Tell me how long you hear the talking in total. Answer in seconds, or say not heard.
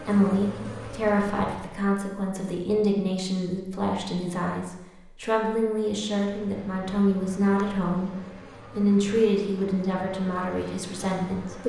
11 s.